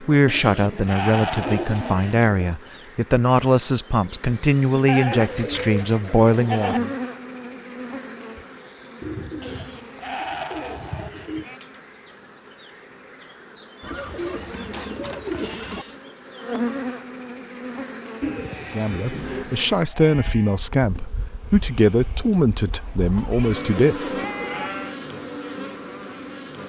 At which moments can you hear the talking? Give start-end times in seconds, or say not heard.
0.0-6.9, 18.6-24.1.